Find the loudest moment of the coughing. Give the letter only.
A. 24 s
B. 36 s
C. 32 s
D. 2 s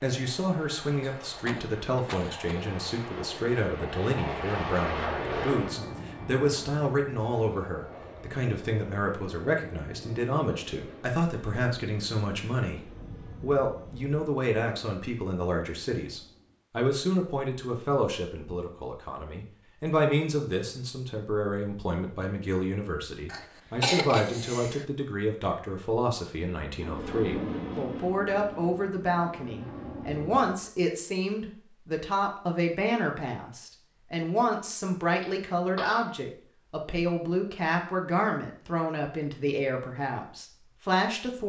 A.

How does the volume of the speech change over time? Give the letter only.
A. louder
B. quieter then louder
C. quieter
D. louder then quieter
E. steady
E.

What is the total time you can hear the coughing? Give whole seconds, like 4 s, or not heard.
4 s.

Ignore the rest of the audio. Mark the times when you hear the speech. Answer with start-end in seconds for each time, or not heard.
0.0-41.4.